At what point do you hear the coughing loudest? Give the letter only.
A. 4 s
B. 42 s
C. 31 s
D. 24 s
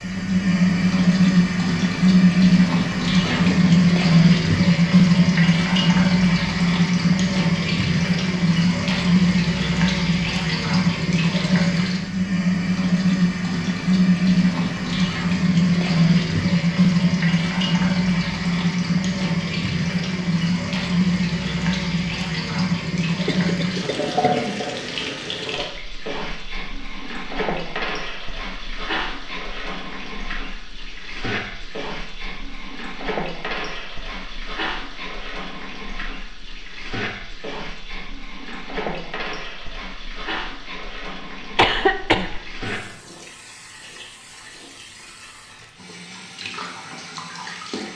B.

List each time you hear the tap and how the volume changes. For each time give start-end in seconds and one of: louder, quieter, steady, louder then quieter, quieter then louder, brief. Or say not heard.
0.0-47.9 quieter.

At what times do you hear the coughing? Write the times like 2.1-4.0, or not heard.
3.2-3.8, 23.2-24.6, 41.5-42.5.